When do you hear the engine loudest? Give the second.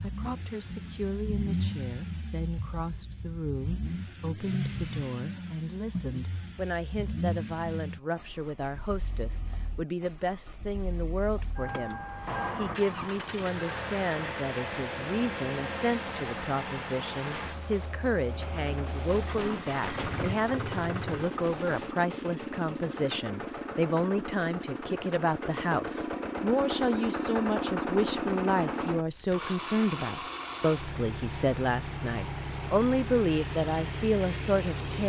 28 s.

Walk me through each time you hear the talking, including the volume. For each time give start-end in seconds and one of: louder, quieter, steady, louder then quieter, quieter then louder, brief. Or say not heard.
0.0-35.0 louder.